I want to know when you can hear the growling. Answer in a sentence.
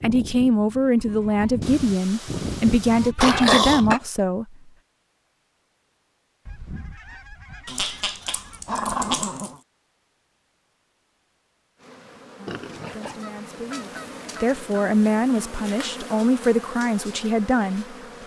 The growling can be heard from 3.2 to 4.0 s, from 7.7 to 9.6 s and from 12.4 to 13.2 s.